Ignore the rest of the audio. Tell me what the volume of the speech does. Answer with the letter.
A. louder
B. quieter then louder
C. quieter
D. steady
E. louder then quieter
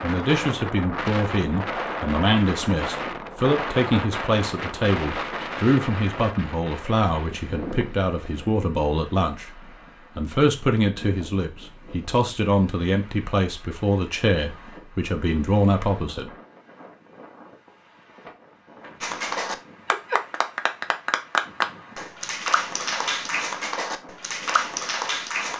D.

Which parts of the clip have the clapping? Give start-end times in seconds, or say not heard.
19.0-25.5.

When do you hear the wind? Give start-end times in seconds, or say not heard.
0.0-25.5.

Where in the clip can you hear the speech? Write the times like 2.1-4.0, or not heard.
0.0-16.3.